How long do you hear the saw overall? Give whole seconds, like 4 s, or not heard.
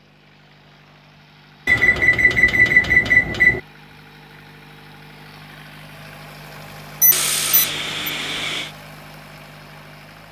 2 s.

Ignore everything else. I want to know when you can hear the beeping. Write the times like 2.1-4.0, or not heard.
1.6-3.6, 7.0-8.1.